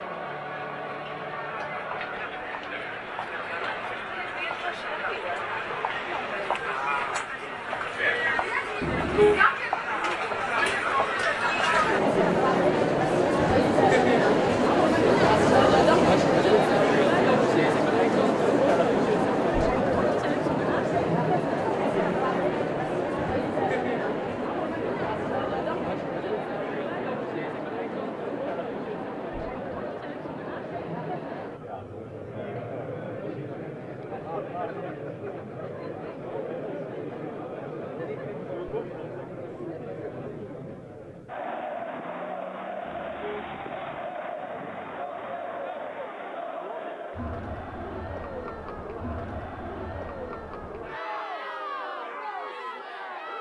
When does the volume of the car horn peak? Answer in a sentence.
The volume of the car horn peaks at 9 seconds.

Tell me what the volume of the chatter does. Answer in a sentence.
The loudness of the chatter goes up, then down.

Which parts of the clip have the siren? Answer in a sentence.
The siren can't be heard in this clip.